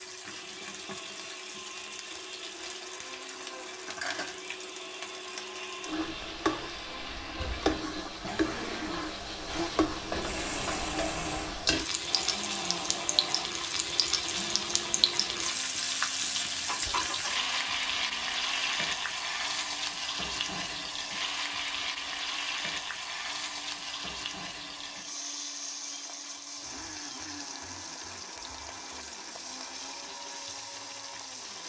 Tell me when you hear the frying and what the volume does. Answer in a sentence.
The frying can be heard from 0.0 to 31.6 s, getting louder then quieter.